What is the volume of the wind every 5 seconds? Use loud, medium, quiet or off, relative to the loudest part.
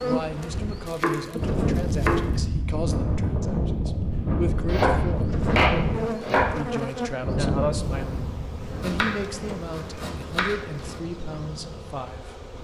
loud, loud, quiet.